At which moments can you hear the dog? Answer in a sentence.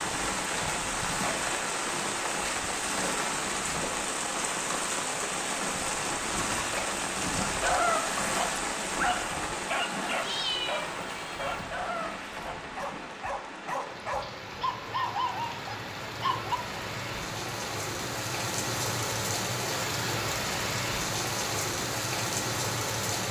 You can hear the dog from 7.5 to 16.6 s.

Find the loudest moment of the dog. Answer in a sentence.
The loudest moment of the dog is at 8 seconds.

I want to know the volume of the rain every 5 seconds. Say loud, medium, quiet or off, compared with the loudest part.
loud, loud, medium, loud, loud.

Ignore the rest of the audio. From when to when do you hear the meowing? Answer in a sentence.
The meowing can be heard from 10.2 to 11.7 s.